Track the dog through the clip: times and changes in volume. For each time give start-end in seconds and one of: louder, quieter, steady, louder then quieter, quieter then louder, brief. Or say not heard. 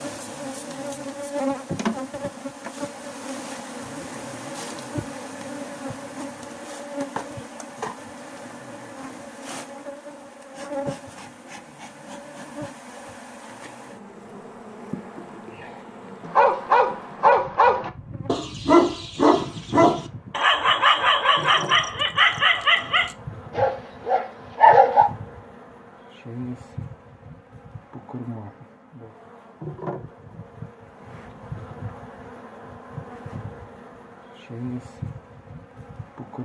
16.2-25.1 steady.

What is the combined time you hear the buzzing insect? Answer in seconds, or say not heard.
36 s.